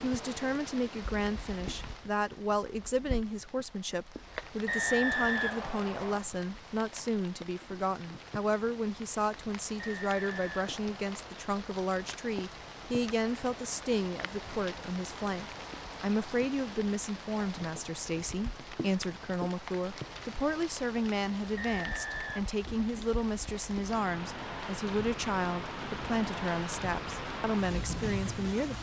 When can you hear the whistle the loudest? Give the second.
5 s.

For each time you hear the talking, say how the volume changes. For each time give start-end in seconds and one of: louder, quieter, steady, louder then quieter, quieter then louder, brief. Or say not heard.
0.0-28.7 steady.